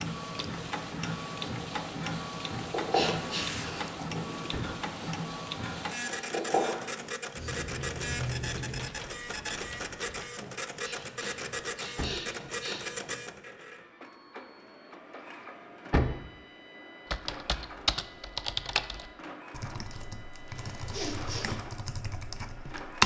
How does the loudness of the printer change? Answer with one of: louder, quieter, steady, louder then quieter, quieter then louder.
quieter.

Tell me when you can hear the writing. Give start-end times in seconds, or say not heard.
1.0-8.8.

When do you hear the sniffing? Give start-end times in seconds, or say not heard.
2.9-3.6, 10.8-12.8, 20.6-21.5.